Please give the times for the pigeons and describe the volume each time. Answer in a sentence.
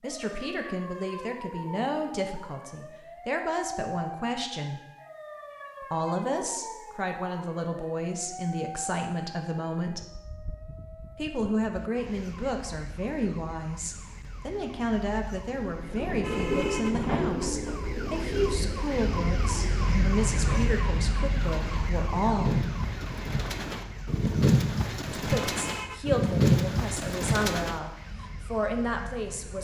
You can hear the pigeons from 15.7 to 27.8 s, getting quieter then louder.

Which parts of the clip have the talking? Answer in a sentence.
The talking can be heard from 0.0 to 4.8 s, from 5.8 to 10.1 s, from 11.2 to 22.6 s and from 25.1 to 29.5 s.